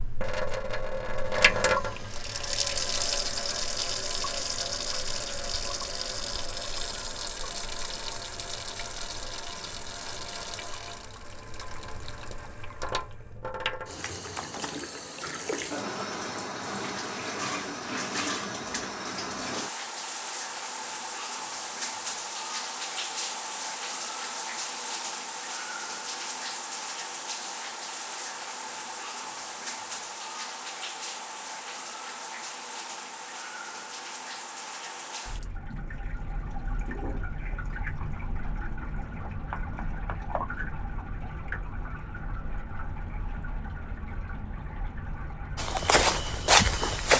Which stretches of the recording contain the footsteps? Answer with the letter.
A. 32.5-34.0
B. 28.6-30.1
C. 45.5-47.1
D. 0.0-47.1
C.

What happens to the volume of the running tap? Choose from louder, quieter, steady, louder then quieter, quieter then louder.
quieter.